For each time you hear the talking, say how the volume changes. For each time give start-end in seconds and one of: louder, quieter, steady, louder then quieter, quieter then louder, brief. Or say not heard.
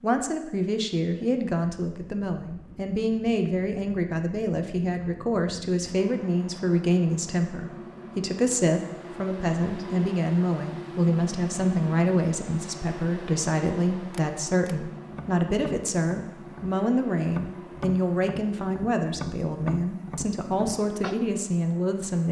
0.0-22.2 steady.